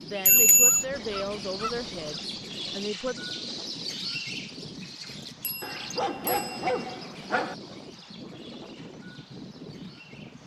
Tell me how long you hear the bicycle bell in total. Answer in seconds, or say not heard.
2 s.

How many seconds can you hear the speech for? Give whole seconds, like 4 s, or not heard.
3 s.